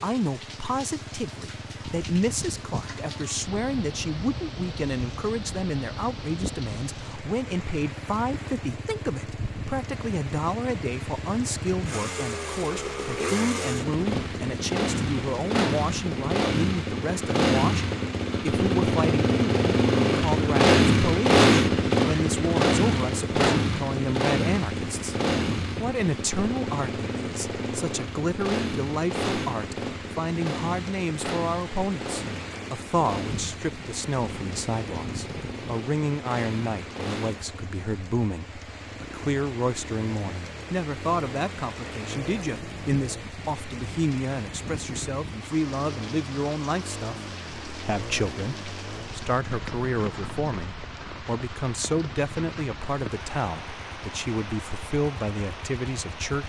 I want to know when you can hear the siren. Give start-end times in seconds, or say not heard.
not heard.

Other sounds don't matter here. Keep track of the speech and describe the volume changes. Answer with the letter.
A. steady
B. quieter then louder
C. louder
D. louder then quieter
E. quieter
A.